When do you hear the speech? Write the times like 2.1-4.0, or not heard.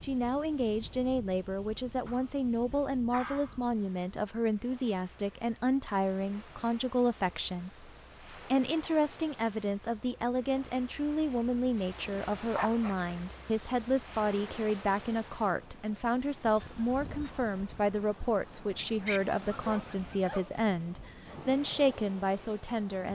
0.0-23.1.